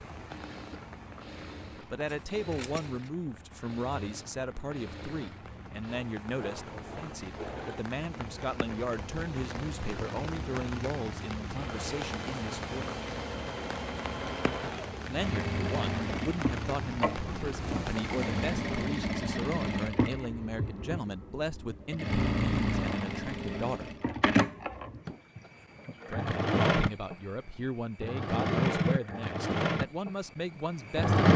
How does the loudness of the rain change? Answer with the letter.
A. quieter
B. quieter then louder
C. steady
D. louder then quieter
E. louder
E.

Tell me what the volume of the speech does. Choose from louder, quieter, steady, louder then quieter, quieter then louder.
steady.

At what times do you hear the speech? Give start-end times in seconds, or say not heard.
1.8-12.9, 15.1-23.9, 26.1-31.2.